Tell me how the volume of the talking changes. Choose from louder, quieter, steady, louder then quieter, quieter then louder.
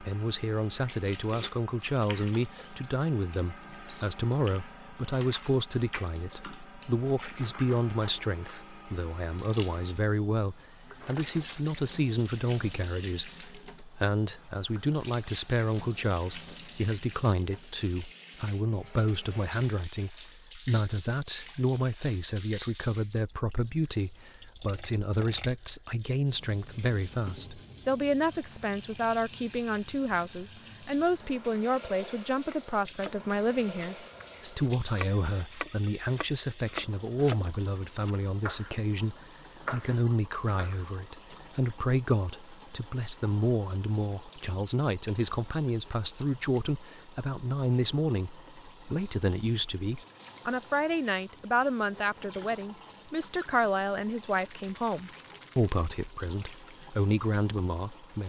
steady.